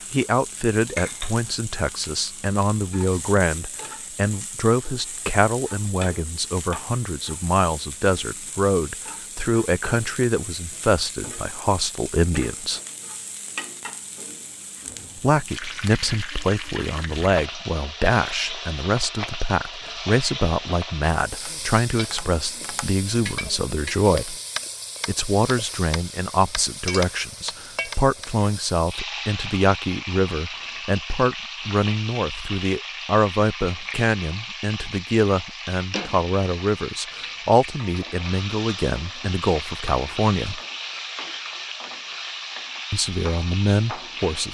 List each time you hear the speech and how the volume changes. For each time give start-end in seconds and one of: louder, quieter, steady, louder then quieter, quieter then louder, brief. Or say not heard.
0.1-12.8 steady
15.2-24.4 steady
25.1-40.6 steady
42.9-44.4 brief.